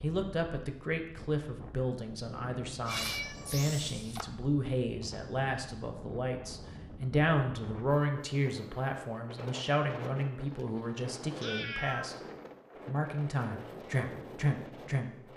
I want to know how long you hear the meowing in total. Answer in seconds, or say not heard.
3 s.